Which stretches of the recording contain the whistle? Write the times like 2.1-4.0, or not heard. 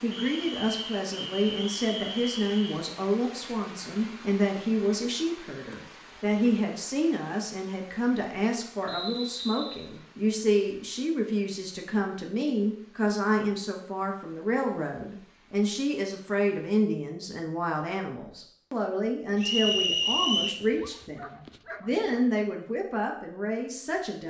0.1-2.8, 8.8-9.8, 19.4-20.6.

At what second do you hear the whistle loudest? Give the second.
20 s.